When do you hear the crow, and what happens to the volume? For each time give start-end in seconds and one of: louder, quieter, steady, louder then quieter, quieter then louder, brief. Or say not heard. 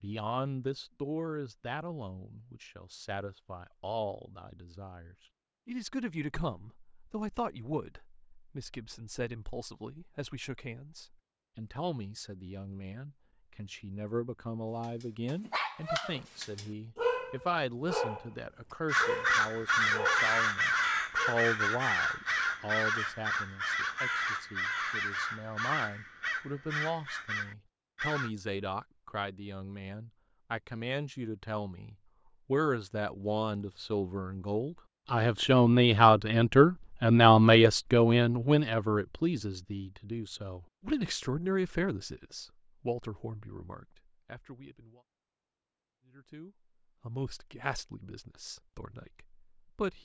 18.9-28.3 quieter.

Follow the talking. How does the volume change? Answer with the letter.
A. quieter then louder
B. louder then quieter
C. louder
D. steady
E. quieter
B.